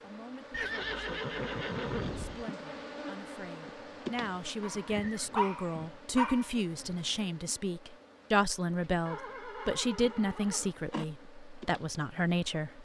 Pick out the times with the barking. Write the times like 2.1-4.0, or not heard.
4.6-7.2.